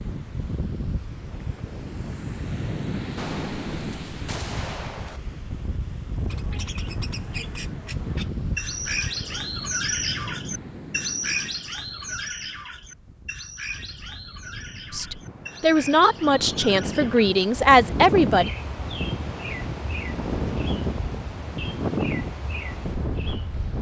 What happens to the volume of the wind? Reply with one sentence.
The volume of the wind goes down, then up.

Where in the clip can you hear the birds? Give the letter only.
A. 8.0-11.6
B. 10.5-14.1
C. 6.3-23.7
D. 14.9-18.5
C.